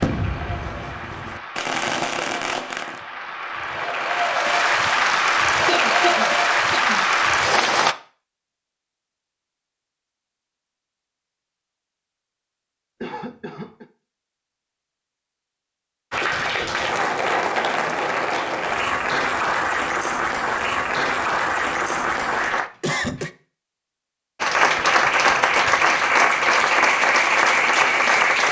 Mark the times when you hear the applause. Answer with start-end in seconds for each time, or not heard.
0.0-8.0, 16.1-22.7, 24.4-28.4.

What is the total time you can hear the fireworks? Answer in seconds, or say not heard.
3 s.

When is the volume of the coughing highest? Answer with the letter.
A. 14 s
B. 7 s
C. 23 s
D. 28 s
C.